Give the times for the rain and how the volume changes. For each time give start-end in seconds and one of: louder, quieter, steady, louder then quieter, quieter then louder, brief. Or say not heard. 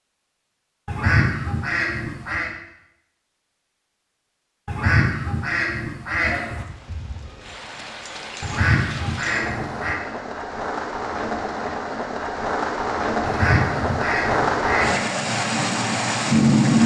6.5-16.8 louder.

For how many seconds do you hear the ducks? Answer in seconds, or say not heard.
7 s.